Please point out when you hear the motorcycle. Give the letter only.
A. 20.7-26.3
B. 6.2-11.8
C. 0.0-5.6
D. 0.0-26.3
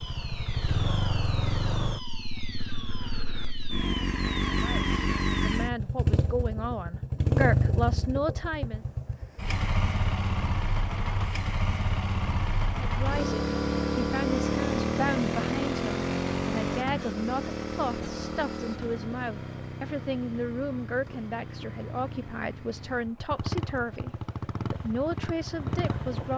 D.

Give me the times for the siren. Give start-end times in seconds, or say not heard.
0.0-5.6.